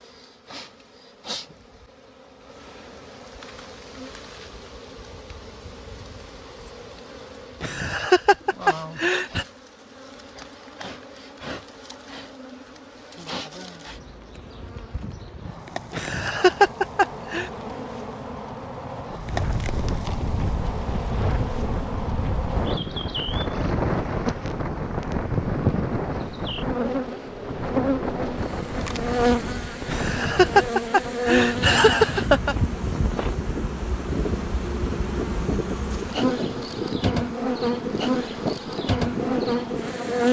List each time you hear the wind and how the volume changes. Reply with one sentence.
The wind can be heard from 19.1 to 40.2 s, at a steady volume.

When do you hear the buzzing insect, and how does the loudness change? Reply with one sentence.
You can hear the buzzing insect from 0.0 to 40.2 s, getting louder.